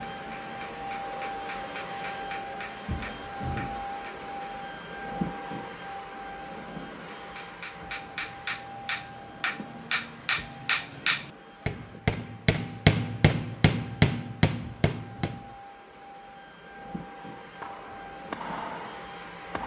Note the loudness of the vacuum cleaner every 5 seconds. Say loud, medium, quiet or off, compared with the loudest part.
loud, loud, quiet, medium.